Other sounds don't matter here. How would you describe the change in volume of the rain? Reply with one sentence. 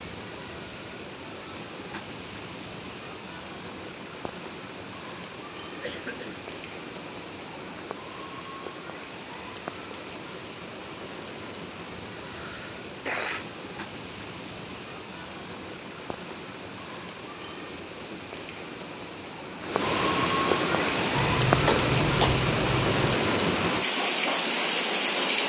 The volume of the rain goes up.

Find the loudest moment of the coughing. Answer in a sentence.
The volume of the coughing peaks at 22 seconds.